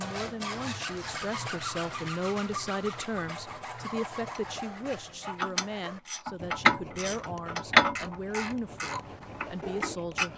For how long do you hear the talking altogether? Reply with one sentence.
The talking can be heard for 10 seconds in total.